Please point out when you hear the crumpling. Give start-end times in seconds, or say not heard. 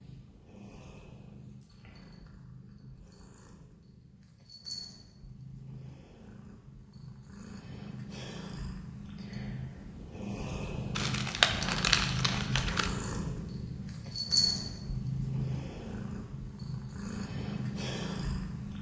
10.9-12.9.